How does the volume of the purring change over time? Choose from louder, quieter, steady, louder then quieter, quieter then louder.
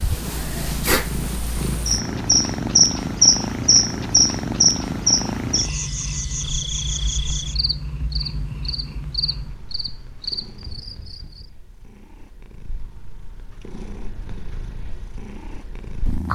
quieter then louder.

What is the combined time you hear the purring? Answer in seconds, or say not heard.
16 s.